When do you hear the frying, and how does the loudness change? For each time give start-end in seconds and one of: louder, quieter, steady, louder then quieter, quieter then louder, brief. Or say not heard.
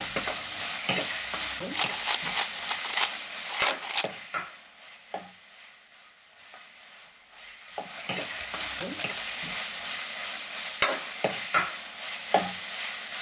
0.0-13.1 quieter then louder.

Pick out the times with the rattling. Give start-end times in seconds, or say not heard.
1.7-4.1, 8.0-9.2.